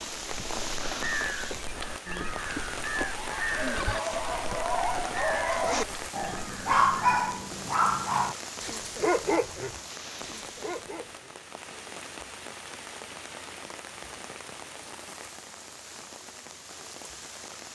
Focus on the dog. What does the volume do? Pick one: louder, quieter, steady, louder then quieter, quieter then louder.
louder then quieter.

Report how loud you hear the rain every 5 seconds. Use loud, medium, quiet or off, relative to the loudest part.
loud, loud, medium, medium.